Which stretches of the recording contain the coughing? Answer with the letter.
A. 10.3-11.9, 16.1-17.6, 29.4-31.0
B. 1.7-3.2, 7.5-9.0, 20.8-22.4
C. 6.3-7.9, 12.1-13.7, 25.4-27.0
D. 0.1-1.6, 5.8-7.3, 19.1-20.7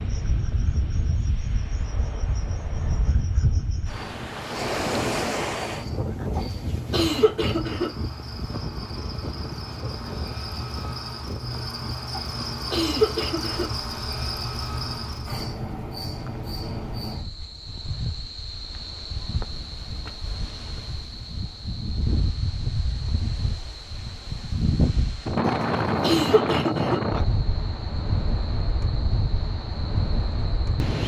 C.